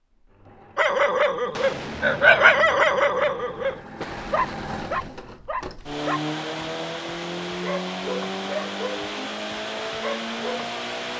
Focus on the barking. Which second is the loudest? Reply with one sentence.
The loudest moment of the barking is at 2 seconds.